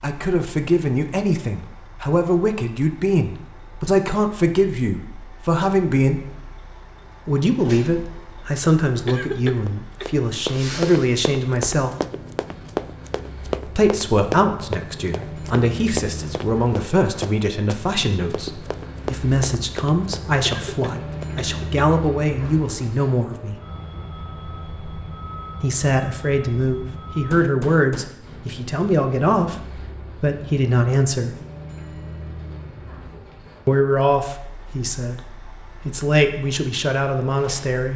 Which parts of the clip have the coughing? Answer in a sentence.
You can hear the coughing from 9.1 to 10.1 s and from 20.4 to 21.9 s.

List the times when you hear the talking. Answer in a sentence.
The talking can be heard from 0.0 to 6.2 s, from 7.2 to 11.9 s, from 13.7 to 23.6 s, from 25.6 to 31.4 s and from 33.6 to 37.9 s.